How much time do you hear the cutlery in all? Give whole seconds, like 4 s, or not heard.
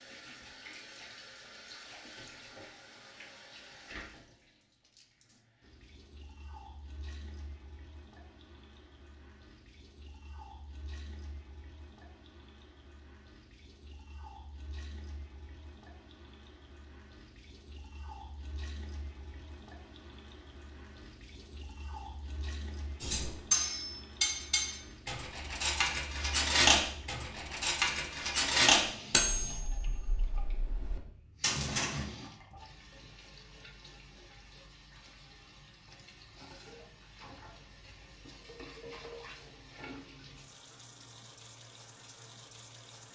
9 s.